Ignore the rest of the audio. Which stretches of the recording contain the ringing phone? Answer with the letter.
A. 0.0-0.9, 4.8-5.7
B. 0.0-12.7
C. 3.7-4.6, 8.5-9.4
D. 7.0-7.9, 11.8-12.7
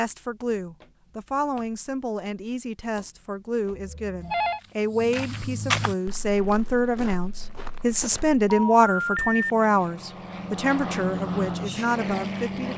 C.